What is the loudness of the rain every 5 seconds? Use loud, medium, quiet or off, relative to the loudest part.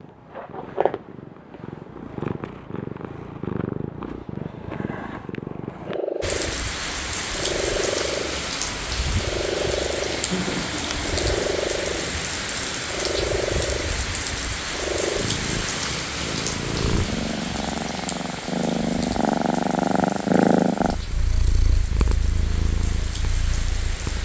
off, loud, loud, loud, medium.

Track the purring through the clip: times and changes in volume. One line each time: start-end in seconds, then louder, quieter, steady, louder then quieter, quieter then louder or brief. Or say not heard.
0.0-24.2 louder.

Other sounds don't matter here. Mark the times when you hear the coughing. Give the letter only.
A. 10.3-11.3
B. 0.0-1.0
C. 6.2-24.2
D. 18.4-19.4
A.